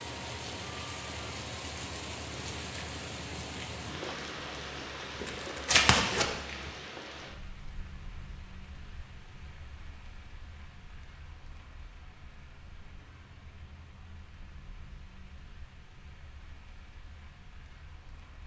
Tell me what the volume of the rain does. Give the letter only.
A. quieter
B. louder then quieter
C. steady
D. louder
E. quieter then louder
A.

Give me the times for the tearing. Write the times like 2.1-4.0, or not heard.
5.2-6.7.